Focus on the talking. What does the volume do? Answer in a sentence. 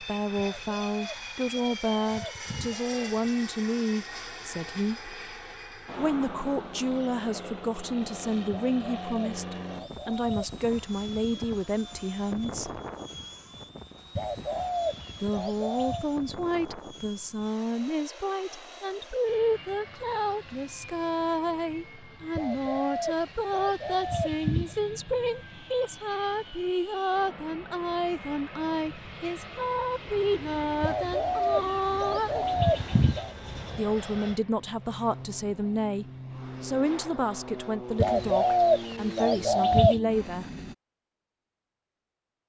The loudness of the talking stays about the same.